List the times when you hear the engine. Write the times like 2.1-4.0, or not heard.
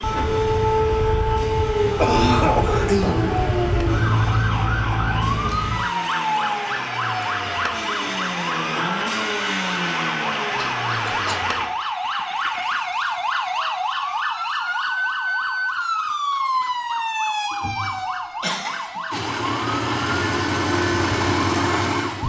0.0-12.8, 19.1-22.2.